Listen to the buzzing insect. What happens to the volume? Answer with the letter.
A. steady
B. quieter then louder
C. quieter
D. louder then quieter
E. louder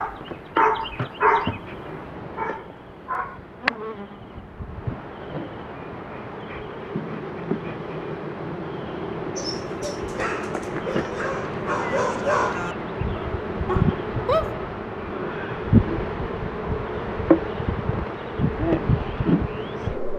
E.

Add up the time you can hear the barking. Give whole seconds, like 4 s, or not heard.
8 s.